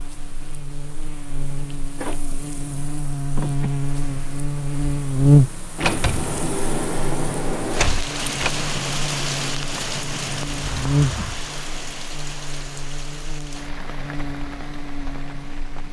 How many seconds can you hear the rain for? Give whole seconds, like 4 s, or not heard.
16 s.